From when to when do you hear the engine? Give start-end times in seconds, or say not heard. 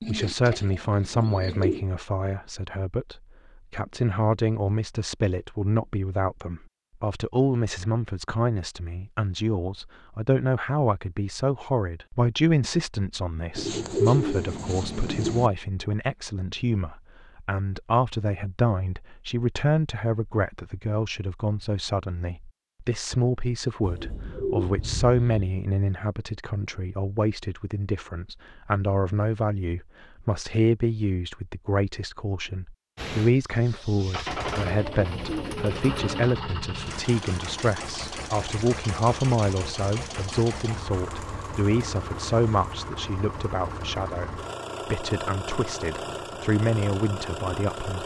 33.0-48.0.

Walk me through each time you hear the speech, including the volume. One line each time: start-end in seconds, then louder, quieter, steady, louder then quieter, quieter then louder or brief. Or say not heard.
0.0-48.0 steady.